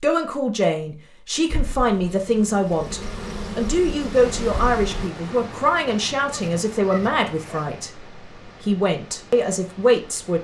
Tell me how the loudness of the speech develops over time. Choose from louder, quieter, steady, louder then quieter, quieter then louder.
steady.